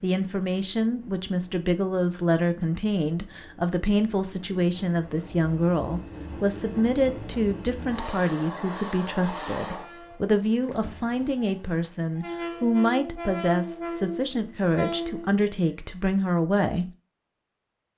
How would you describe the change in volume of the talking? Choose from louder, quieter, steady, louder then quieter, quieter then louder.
steady.